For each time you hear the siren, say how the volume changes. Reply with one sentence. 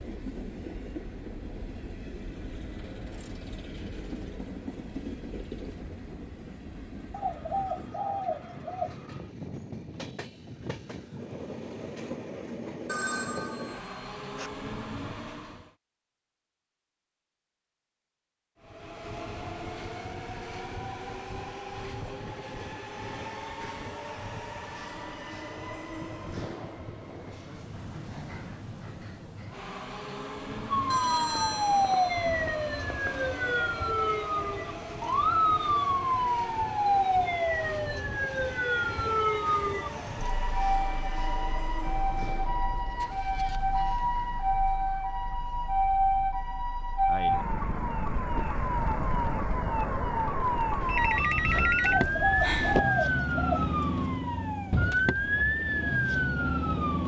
The siren can be heard from 30.7 to 57.0 s, at a steady volume.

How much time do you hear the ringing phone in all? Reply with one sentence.
The ringing phone can be heard for 6 seconds in total.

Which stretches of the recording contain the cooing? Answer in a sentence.
You can hear the cooing from 7.1 to 9.3 s and from 51.8 to 54.2 s.